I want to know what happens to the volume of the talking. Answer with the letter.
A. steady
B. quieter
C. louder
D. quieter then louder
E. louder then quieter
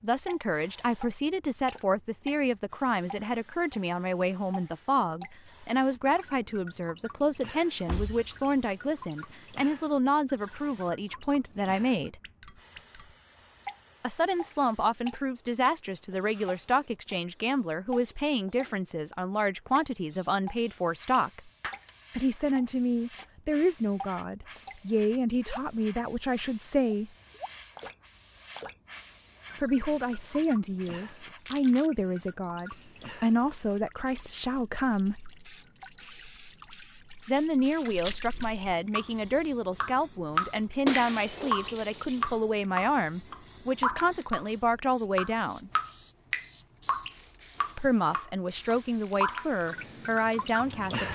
A.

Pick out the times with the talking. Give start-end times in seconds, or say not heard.
0.0-12.2, 14.0-21.5, 22.1-27.1, 29.6-35.2, 37.2-45.7, 47.8-51.0.